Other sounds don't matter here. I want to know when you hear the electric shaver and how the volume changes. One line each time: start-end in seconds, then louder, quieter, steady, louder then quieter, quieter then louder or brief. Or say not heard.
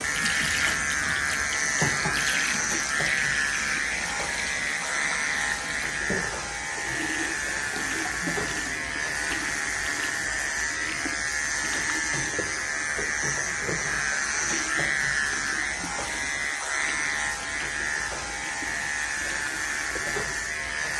0.0-20.9 steady.